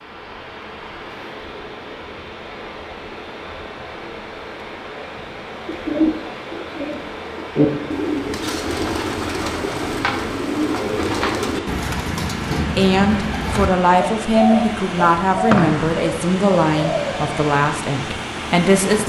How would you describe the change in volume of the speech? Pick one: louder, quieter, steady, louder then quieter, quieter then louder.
steady.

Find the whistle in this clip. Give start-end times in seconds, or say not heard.
15.4-16.1.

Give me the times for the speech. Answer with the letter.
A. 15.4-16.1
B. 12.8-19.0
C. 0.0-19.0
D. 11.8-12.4
B.